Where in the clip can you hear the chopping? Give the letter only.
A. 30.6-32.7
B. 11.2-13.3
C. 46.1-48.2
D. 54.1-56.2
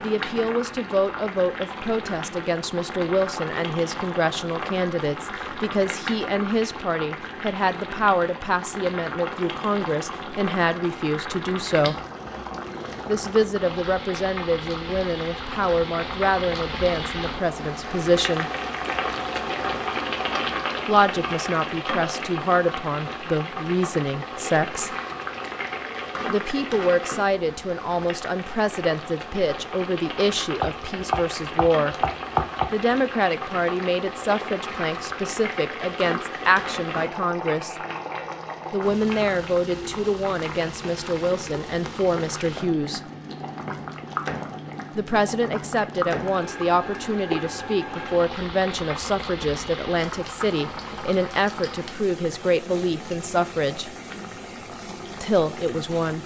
A.